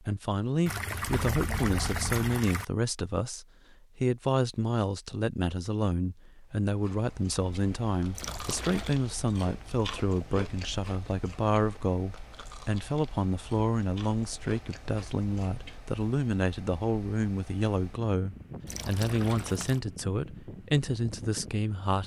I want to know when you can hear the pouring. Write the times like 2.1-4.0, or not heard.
0.7-2.6, 8.2-8.9, 18.6-19.8.